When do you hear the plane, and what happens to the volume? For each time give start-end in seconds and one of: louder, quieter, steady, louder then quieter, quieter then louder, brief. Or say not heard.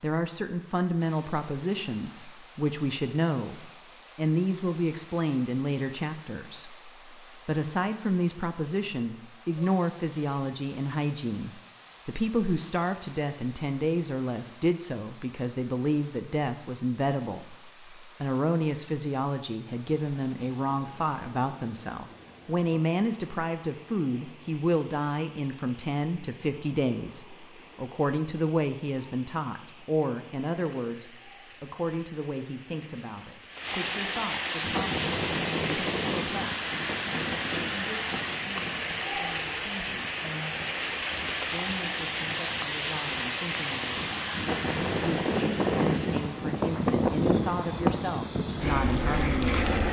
34.6-49.8 quieter then louder.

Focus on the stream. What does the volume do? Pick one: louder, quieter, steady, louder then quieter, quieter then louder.
louder.